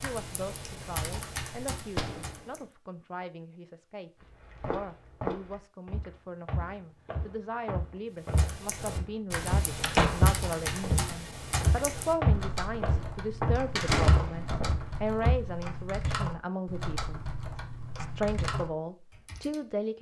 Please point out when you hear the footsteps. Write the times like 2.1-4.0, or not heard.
4.2-15.4.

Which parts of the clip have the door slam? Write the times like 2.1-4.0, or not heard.
1.9-2.5, 9.8-10.3, 13.8-14.7.